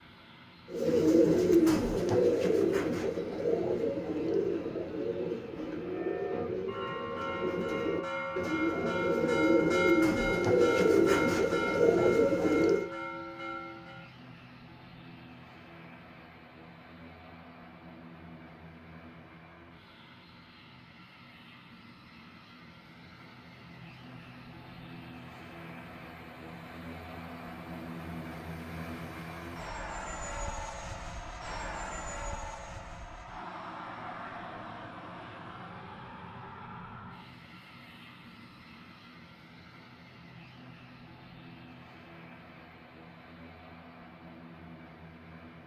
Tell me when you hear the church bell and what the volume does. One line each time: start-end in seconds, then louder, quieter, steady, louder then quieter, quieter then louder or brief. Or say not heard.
5.8-14.1 louder then quieter.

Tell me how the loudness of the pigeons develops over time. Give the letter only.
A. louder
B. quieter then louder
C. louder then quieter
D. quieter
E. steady
B.